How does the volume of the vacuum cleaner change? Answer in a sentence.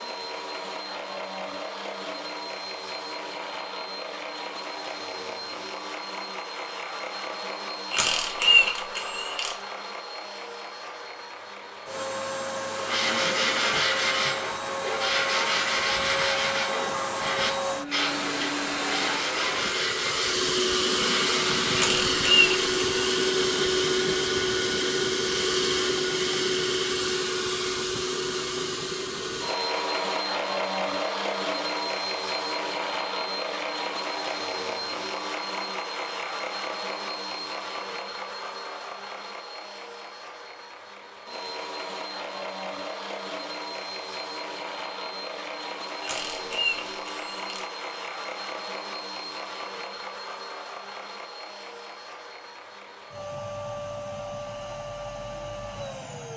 The volume of the vacuum cleaner goes up, then down.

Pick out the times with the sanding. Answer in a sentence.
You can hear the sanding from 12.7 to 21.9 s.